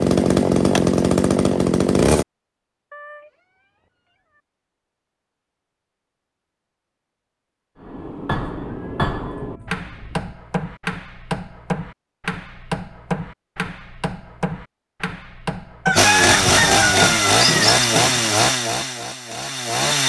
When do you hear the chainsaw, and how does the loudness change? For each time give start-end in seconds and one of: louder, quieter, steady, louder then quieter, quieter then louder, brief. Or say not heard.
0.0-2.2 brief
15.9-20.0 quieter.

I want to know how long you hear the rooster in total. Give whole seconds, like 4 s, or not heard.
2 s.